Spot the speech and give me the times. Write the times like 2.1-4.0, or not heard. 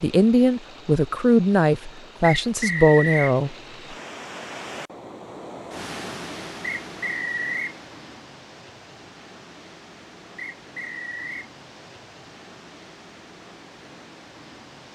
0.0-3.5.